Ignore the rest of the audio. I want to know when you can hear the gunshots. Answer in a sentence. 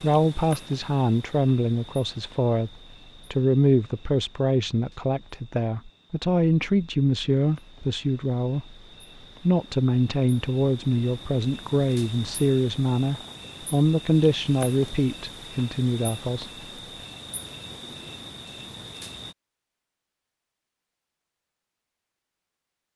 You can't hear the gunshots here.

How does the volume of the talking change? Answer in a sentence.
The loudness of the talking stays about the same.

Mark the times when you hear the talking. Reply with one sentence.
The talking can be heard from 0.0 to 8.8 s and from 9.4 to 16.5 s.